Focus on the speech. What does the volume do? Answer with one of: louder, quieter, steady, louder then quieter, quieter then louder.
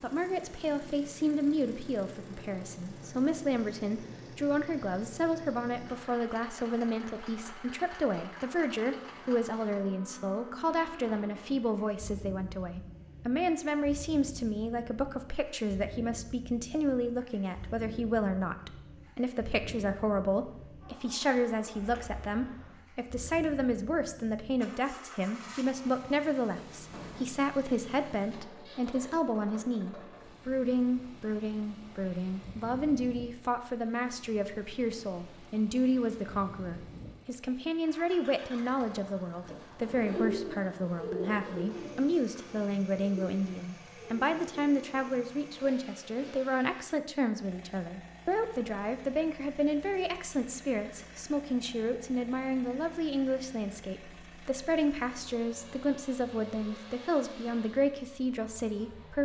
steady.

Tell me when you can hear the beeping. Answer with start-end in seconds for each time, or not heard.
not heard.